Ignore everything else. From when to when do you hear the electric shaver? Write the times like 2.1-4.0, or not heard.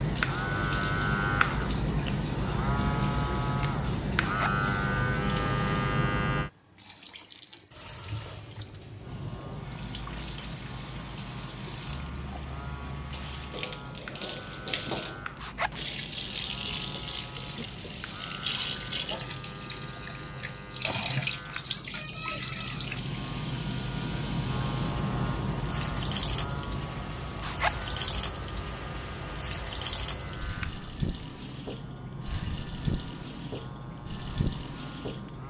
0.0-6.5, 9.0-35.4.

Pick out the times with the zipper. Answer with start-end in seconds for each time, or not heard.
4.2-4.7, 15.3-15.8, 27.4-27.9.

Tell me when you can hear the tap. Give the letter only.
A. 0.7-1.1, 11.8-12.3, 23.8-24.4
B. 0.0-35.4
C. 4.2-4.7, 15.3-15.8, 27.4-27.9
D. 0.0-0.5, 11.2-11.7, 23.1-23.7
B.